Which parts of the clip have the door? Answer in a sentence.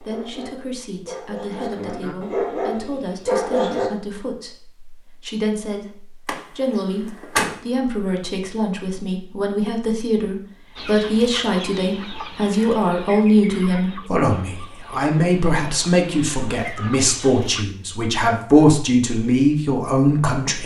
You can hear the door from 6.2 to 7.5 s.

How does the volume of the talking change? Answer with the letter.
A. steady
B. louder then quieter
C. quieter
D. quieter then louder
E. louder
E.